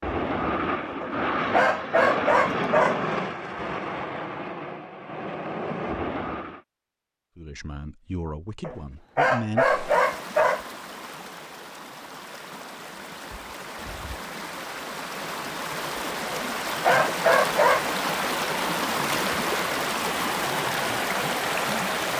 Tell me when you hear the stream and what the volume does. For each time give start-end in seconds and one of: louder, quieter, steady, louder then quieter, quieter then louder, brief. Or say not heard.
9.6-22.1 louder.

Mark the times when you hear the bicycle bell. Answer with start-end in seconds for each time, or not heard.
not heard.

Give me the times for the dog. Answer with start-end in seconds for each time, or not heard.
1.0-3.0, 8.6-10.7, 16.3-17.9.